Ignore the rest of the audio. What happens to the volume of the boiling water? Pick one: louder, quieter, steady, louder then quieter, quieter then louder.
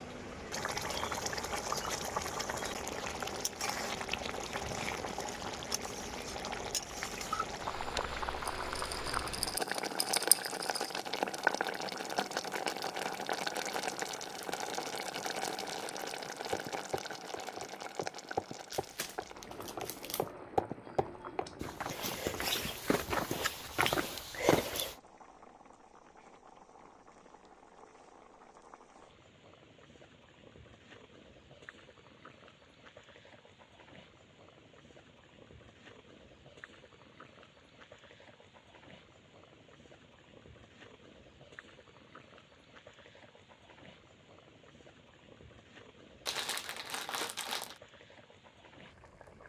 quieter.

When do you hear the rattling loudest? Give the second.
10 s.